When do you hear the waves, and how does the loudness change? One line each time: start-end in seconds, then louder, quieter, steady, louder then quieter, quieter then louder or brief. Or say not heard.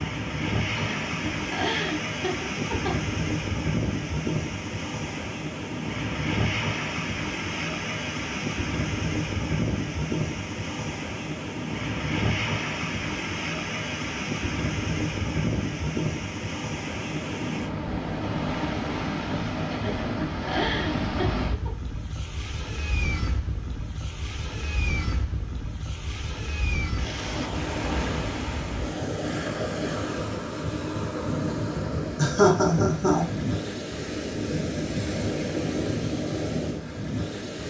0.0-37.6 steady.